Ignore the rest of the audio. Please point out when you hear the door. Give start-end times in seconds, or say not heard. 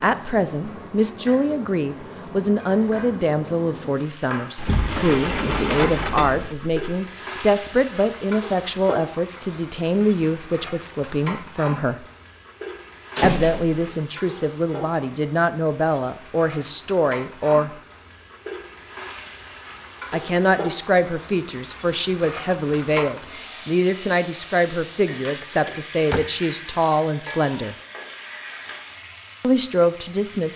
4.5-6.7, 13.2-13.9, 25.5-26.2.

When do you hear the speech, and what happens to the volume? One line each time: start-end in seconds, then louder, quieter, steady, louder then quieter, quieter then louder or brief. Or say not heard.
0.0-12.1 steady
13.2-17.7 steady
20.1-27.8 steady
29.4-30.5 brief.